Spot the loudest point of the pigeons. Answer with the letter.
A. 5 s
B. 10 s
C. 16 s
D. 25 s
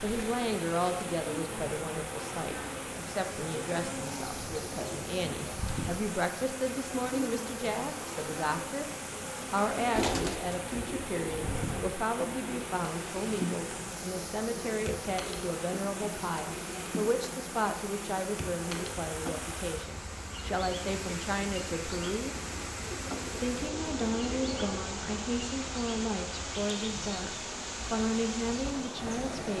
B.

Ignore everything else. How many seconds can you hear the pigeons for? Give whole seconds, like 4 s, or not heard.
5 s.